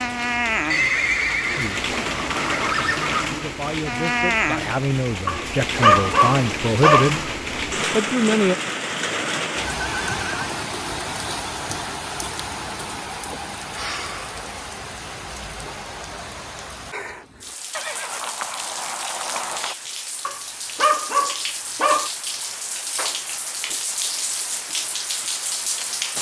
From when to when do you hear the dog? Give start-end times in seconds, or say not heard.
5.2-7.1, 20.2-22.1.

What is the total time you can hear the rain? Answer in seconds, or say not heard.
26 s.